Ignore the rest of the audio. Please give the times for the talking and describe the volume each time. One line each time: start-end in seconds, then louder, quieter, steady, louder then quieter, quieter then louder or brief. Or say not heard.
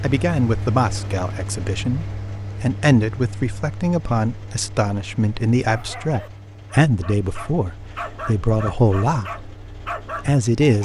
0.0-9.4 steady
10.2-10.8 brief.